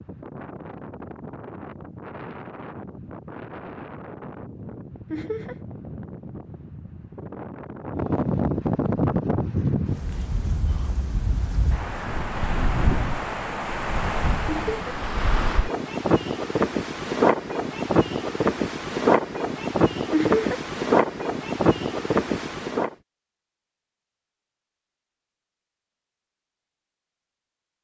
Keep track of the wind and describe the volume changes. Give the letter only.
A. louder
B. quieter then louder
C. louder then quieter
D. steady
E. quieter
A.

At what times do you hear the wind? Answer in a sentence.
You can hear the wind from 0.0 to 22.9 s.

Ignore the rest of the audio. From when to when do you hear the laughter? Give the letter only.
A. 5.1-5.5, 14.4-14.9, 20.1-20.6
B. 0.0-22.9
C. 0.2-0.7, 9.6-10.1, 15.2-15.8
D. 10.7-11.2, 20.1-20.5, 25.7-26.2
A.